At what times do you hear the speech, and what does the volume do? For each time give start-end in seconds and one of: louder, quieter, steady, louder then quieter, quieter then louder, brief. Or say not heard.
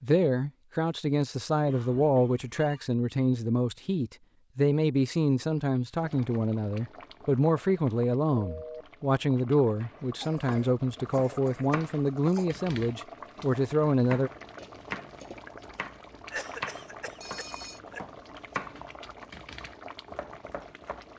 0.0-14.3 steady.